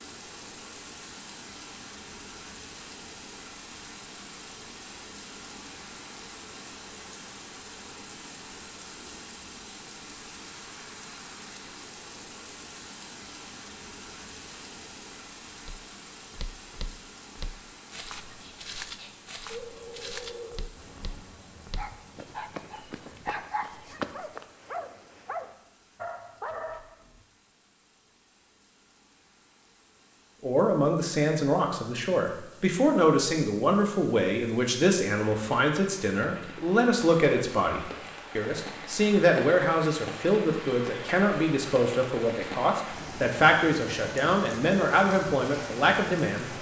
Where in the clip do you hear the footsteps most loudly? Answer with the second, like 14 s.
24 s.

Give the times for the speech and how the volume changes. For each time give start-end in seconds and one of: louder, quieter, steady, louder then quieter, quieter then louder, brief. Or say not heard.
30.4-46.5 steady.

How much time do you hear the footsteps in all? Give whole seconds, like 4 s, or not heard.
9 s.